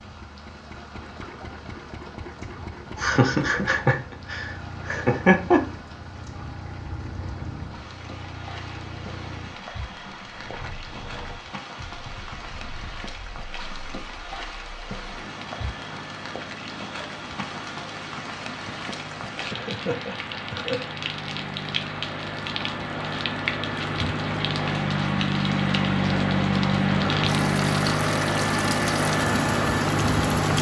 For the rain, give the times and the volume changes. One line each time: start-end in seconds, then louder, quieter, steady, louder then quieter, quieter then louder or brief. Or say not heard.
0.0-30.5 louder.